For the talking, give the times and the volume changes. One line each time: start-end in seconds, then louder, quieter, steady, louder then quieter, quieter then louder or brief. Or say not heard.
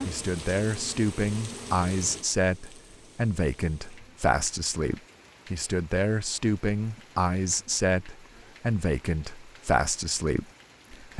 0.1-11.1 steady.